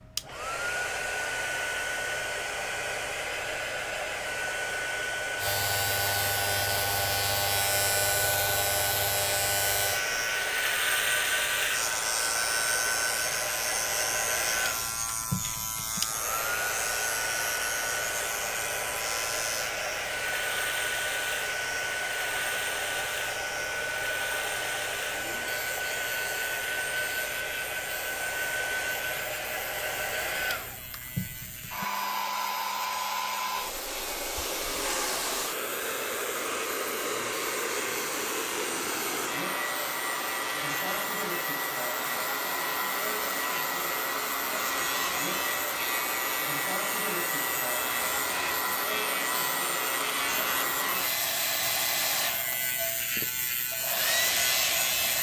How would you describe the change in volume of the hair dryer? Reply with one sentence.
The loudness of the hair dryer stays about the same.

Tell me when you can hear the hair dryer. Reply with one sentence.
You can hear the hair dryer from 0.0 to 55.1 s.